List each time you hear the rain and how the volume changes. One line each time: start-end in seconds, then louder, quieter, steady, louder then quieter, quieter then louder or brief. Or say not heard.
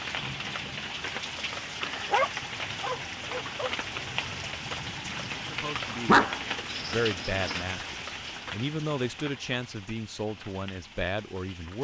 0.0-11.7 quieter.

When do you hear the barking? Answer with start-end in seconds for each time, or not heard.
2.0-3.8, 6.0-7.6.